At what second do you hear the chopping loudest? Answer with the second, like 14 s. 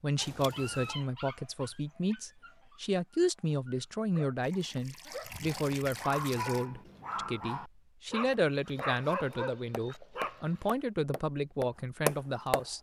12 s.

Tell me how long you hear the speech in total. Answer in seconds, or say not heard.
13 s.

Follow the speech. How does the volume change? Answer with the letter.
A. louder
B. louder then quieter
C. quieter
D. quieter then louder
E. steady
E.